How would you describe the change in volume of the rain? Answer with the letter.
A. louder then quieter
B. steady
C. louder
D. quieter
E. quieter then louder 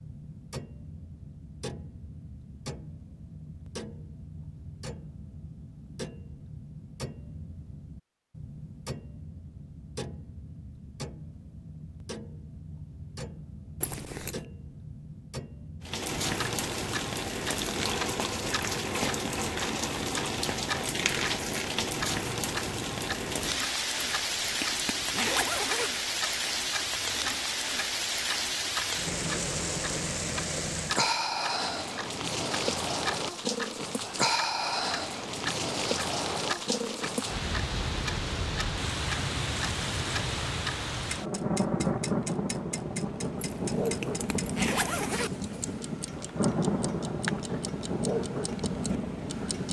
B.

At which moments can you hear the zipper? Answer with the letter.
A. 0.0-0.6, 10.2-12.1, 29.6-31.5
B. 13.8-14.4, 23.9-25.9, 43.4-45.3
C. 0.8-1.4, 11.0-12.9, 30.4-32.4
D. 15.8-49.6
B.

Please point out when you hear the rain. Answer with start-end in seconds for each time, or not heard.
15.8-49.6.